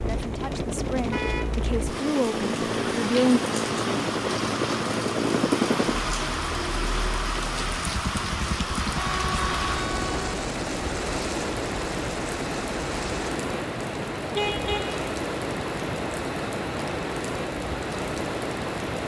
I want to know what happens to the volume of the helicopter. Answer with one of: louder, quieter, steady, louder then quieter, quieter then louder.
quieter.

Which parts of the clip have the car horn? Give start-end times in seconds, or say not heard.
1.1-1.6, 8.9-10.4, 14.3-15.0.